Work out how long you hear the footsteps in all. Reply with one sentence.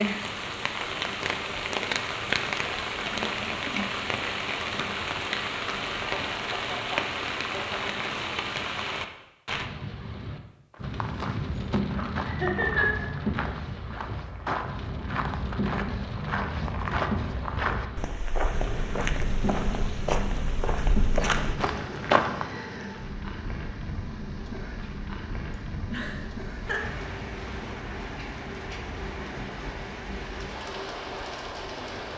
The footsteps can be heard for 12 seconds in total.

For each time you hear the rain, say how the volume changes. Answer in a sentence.
The rain can be heard from 0.0 to 32.1 s, getting quieter.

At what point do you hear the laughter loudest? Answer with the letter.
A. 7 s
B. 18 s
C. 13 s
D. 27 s
C.